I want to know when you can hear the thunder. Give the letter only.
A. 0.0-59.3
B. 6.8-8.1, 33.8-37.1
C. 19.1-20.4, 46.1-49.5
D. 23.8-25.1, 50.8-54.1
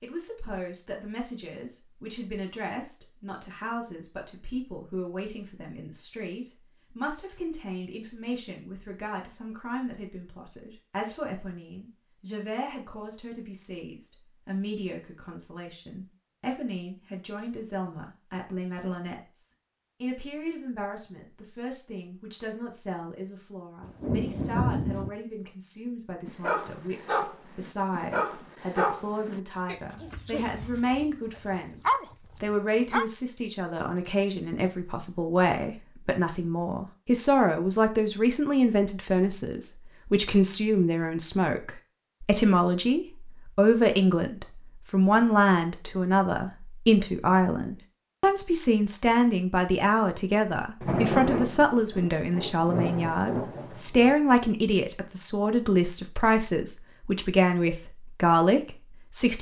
D.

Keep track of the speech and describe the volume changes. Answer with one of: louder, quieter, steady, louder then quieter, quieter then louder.
louder.